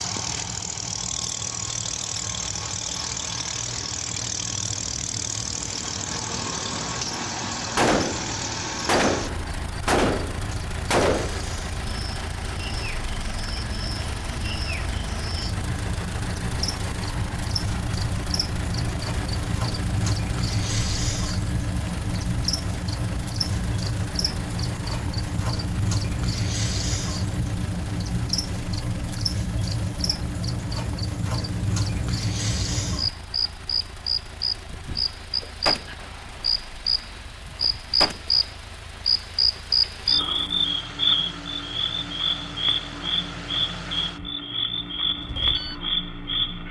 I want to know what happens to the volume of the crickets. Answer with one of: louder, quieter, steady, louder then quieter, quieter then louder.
louder.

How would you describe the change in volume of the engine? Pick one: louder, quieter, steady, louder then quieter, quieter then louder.
quieter.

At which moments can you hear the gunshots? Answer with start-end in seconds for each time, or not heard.
7.8-11.6, 34.6-38.4.